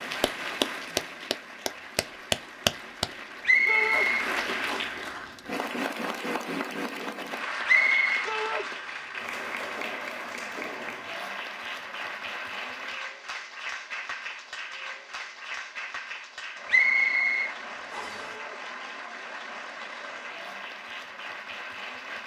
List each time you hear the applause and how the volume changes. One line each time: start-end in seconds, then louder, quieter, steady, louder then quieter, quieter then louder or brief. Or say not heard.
0.0-22.2 quieter.